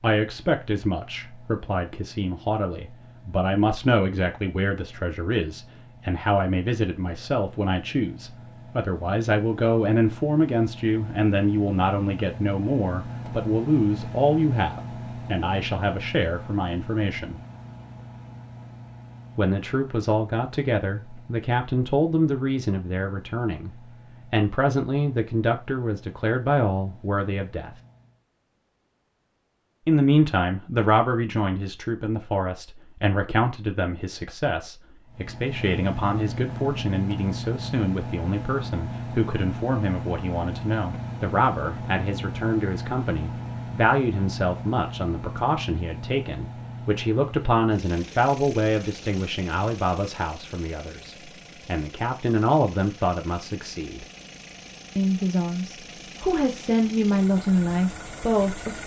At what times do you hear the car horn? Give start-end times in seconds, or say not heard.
not heard.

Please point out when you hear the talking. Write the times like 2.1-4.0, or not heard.
0.0-17.4, 19.4-27.8, 29.9-54.0, 55.0-58.8.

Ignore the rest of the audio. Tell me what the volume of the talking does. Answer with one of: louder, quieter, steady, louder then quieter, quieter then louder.
steady.